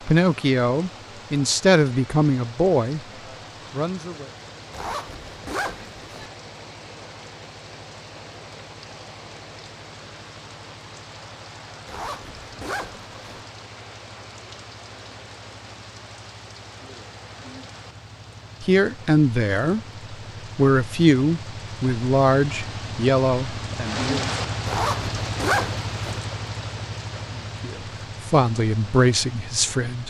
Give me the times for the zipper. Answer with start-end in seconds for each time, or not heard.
4.7-6.3, 11.8-13.4, 24.6-26.2.